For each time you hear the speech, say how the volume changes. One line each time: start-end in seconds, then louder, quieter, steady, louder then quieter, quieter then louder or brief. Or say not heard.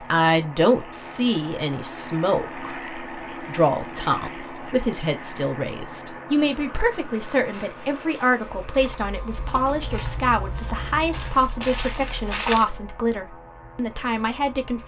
0.0-14.8 steady.